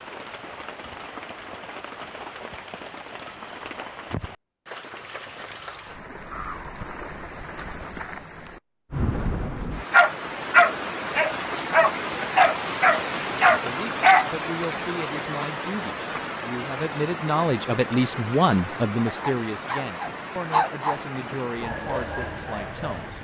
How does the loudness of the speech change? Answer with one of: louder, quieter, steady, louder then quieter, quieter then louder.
louder then quieter.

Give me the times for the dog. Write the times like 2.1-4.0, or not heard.
9.9-14.3, 19.1-23.1.